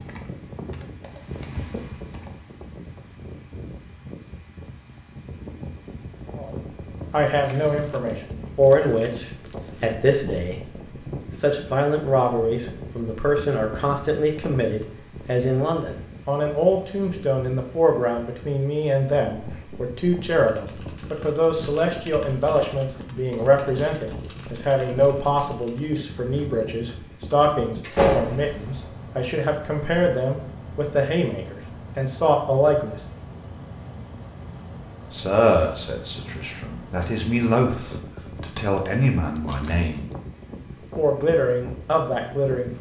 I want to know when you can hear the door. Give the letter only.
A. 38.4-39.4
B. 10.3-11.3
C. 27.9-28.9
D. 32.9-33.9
C.